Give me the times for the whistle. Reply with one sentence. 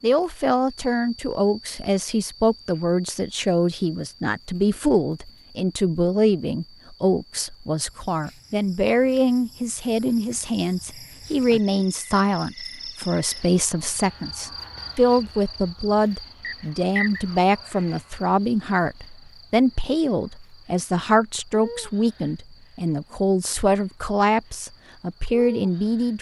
You can hear the whistle from 16.4 to 17.2 s.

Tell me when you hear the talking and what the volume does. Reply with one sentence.
You can hear the talking from 0.0 to 26.1 s, at a steady volume.